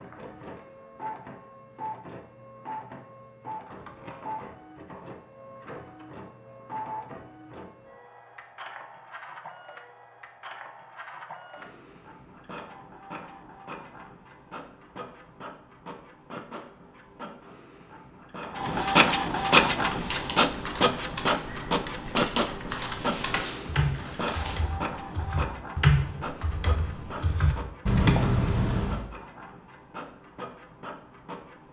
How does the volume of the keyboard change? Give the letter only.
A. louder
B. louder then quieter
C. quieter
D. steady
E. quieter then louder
A.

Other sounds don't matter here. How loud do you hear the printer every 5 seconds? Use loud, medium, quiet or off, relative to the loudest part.
quiet, quiet, quiet, loud, loud, quiet, quiet.